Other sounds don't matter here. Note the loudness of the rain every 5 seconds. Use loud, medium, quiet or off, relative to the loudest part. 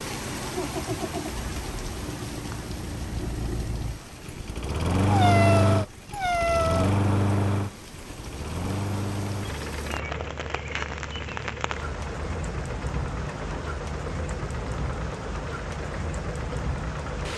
loud, medium, loud, loud.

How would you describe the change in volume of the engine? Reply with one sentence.
The loudness of the engine goes up, then down.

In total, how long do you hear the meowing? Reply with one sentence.
The meowing can be heard for 2 seconds in total.